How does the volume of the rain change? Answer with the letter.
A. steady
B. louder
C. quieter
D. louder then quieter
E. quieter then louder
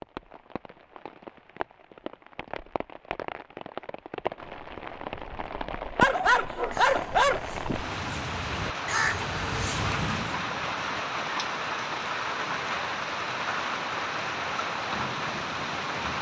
B.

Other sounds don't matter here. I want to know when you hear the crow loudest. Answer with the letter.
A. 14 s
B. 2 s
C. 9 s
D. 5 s
C.